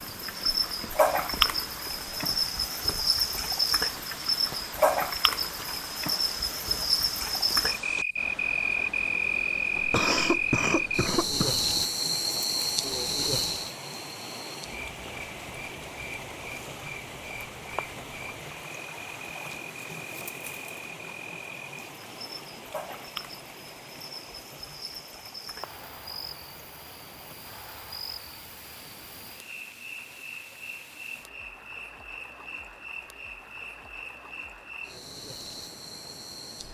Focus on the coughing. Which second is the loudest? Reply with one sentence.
The loudest moment of the coughing is at 10 seconds.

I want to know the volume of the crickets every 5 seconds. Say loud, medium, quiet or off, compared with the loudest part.
loud, loud, loud, quiet, quiet, quiet, quiet, quiet.